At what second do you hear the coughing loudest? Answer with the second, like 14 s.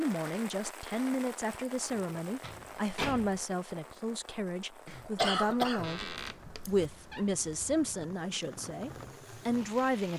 5 s.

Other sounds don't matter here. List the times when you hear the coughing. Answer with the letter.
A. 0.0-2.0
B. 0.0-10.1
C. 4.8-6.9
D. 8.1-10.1
C.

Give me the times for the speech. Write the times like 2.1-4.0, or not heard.
0.0-10.1.